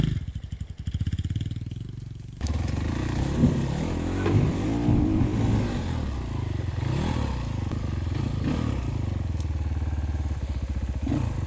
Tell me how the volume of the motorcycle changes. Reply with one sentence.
The loudness of the motorcycle goes up, then down.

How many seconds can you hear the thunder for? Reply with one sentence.
You can hear the thunder for 3 seconds altogether.